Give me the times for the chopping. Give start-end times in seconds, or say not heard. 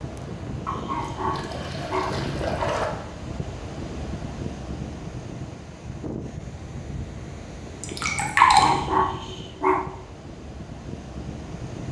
not heard.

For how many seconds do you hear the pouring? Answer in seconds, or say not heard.
3 s.